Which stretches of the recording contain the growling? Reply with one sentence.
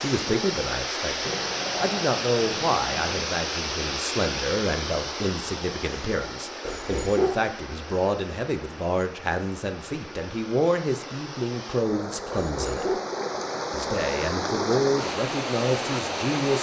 The growling can be heard from 1.2 to 3.2 s, from 6.6 to 7.5 s and from 12.3 to 13.0 s.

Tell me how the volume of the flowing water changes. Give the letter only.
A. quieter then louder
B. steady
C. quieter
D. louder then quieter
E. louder
A.